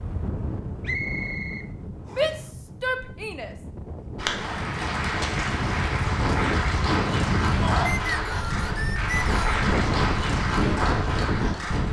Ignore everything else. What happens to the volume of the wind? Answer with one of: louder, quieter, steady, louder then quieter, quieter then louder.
louder.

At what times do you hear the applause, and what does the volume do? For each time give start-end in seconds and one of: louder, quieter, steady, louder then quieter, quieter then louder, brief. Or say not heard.
4.2-11.8 steady.